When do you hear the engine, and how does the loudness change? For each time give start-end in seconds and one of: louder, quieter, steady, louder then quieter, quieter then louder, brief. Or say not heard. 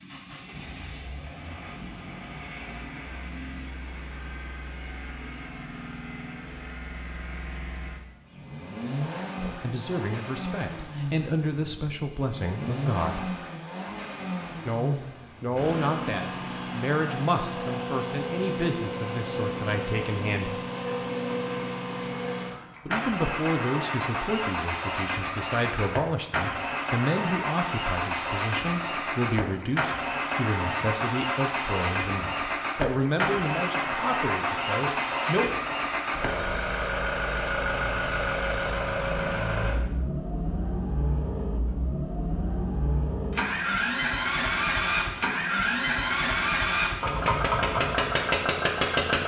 0.0-49.2 louder.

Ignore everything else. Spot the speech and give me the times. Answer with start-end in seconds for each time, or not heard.
9.3-13.3, 14.7-20.6, 22.9-35.5.